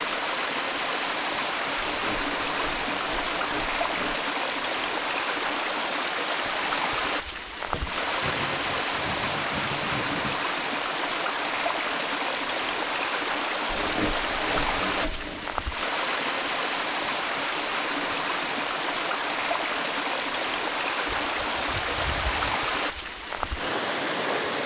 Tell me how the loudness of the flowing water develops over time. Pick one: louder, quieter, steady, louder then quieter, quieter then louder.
steady.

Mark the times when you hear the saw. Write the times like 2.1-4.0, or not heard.
1.8-4.2, 7.7-10.4, 13.7-15.6, 21.1-22.6.